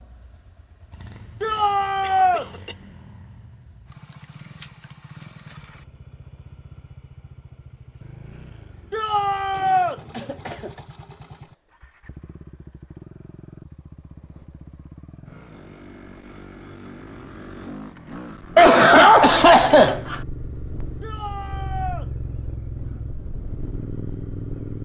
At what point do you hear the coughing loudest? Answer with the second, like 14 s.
19 s.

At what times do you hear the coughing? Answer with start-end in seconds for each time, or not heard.
2.0-2.8, 9.5-10.8, 18.6-20.2.